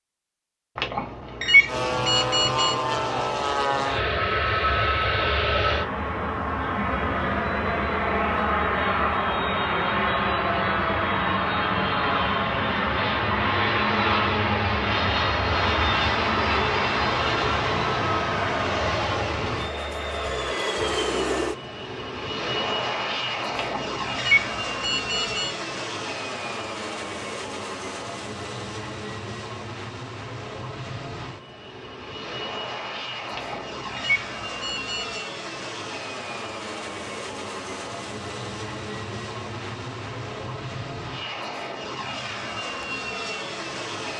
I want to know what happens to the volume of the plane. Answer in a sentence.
The volume of the plane goes down.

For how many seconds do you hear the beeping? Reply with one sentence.
You can hear the beeping for 6 seconds altogether.